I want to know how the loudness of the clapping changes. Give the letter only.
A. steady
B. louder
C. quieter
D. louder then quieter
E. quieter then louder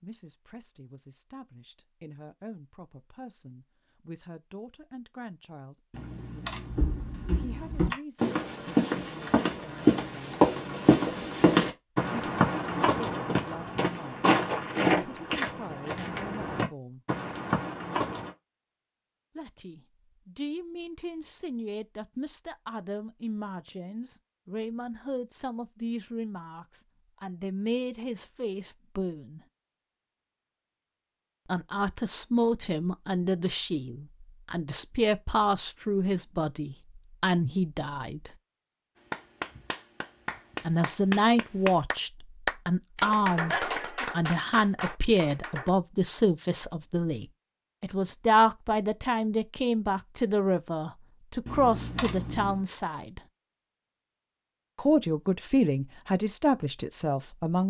D.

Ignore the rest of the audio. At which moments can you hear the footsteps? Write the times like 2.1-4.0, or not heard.
6.7-18.3.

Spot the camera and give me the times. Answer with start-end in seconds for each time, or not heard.
5.9-8.0, 51.5-52.6.